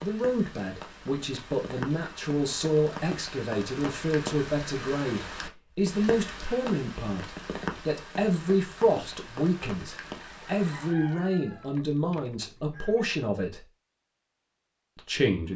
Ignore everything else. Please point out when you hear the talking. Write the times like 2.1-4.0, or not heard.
0.0-13.7, 14.9-15.5.